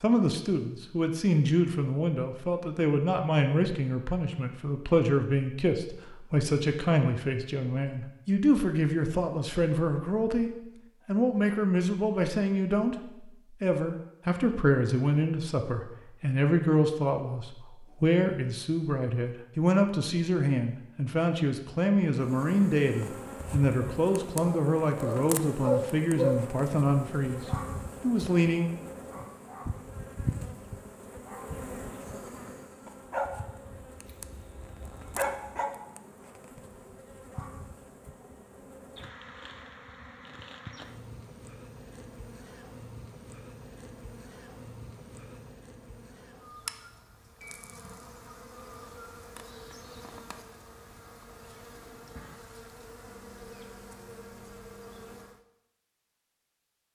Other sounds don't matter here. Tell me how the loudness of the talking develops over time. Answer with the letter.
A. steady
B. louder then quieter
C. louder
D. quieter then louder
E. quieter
A.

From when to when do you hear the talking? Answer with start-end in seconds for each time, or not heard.
0.0-28.7.